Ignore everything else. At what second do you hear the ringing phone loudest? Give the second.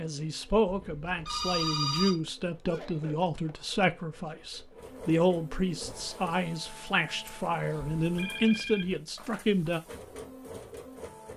2 s.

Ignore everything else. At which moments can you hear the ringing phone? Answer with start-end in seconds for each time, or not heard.
0.7-2.1, 8.2-8.9.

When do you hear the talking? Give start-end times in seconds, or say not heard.
0.0-9.8.